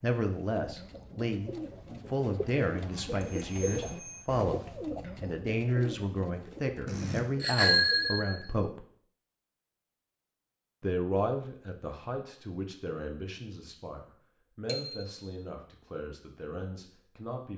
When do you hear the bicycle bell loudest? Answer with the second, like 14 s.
8 s.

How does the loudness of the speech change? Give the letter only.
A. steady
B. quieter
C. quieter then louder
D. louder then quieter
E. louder
B.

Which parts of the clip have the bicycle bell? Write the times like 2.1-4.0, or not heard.
3.2-4.2, 6.8-8.4, 14.7-15.2.